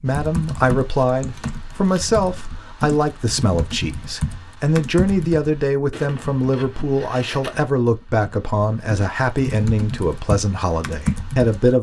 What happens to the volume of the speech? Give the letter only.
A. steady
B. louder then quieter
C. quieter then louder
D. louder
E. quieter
A.